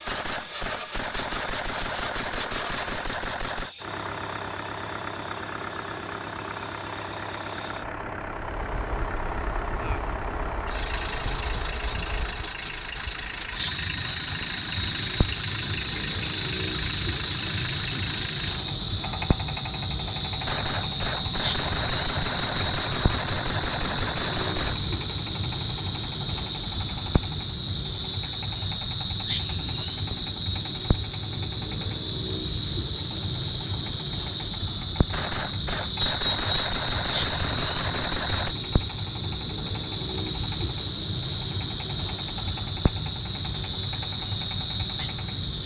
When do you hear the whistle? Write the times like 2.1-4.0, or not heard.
36.0-36.8.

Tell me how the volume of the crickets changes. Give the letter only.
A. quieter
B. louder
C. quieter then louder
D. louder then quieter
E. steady
B.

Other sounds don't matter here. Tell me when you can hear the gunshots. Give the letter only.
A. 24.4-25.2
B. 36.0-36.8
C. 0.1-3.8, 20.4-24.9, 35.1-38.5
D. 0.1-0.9
C.